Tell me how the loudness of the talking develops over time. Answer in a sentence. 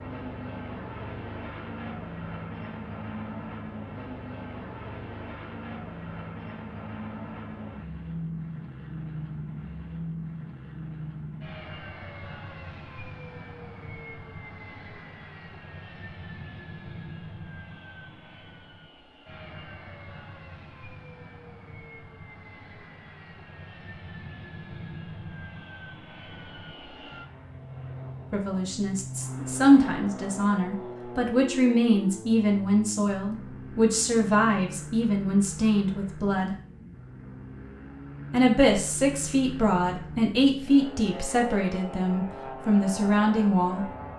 The loudness of the talking stays about the same.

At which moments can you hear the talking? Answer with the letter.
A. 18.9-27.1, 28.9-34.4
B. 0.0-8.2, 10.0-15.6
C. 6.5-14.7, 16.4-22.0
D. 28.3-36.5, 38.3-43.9
D.